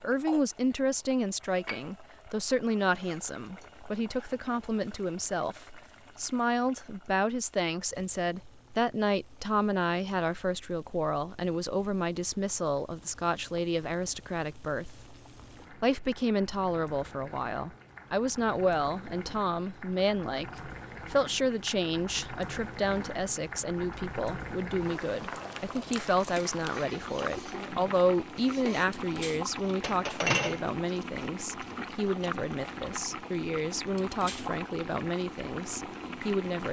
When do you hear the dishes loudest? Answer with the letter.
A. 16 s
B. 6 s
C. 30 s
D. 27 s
C.